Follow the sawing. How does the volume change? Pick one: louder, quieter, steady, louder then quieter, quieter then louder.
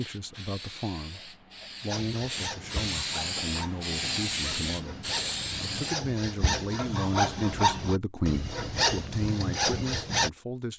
louder.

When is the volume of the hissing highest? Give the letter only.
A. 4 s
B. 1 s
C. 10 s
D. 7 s
A.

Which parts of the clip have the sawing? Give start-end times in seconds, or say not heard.
1.9-10.3.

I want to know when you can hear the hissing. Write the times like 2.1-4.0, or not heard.
0.0-6.0.